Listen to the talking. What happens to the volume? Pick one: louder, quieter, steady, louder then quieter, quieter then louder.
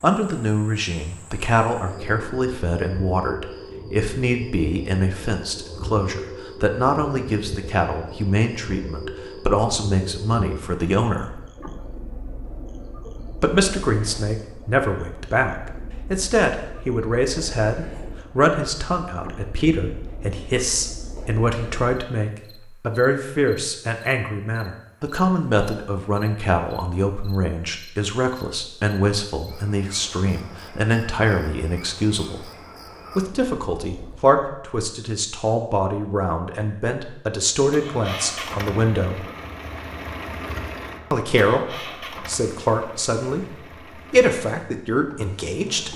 steady.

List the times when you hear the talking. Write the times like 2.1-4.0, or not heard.
0.0-11.4, 13.4-32.5, 33.1-39.2, 41.1-45.9.